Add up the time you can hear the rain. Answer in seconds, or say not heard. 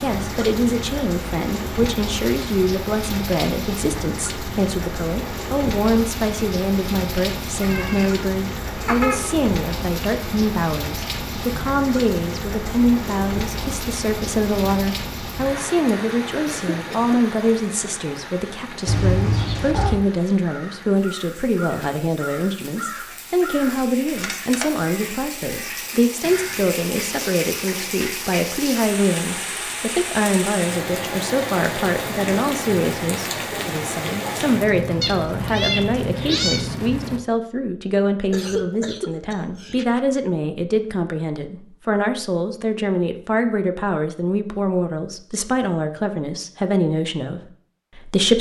37 s.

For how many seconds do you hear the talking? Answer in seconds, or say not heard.
48 s.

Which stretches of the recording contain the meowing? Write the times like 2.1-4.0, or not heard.
7.6-9.2, 18.9-20.0, 35.0-36.6.